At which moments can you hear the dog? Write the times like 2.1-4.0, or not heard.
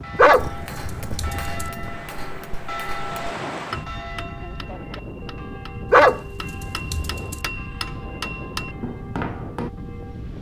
0.1-1.6, 5.9-7.4.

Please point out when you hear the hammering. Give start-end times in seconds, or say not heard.
0.3-9.7.